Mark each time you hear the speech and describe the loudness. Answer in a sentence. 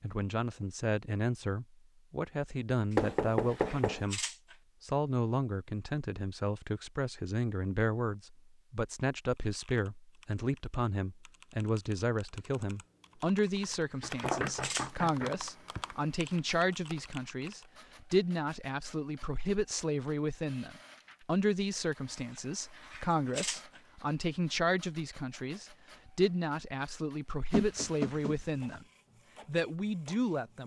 You can hear the speech from 0.0 to 28.9 s, at a steady volume; and briefly from 29.4 to 30.6 s.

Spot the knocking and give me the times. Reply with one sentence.
You can hear the knocking from 3.0 to 4.0 s, from 14.0 to 15.8 s and from 27.5 to 28.8 s.